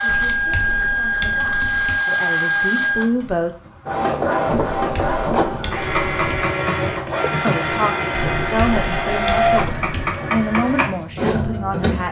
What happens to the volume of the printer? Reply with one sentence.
The loudness of the printer stays about the same.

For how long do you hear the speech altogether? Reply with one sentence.
The speech can be heard for 8 seconds in total.